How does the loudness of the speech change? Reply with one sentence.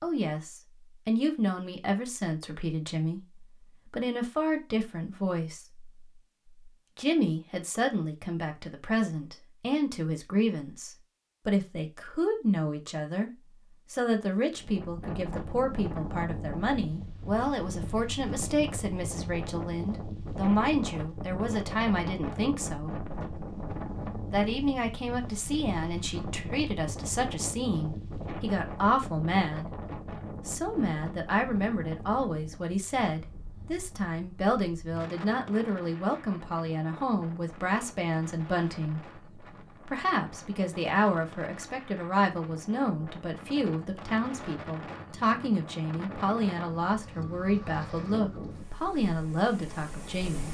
The loudness of the speech stays about the same.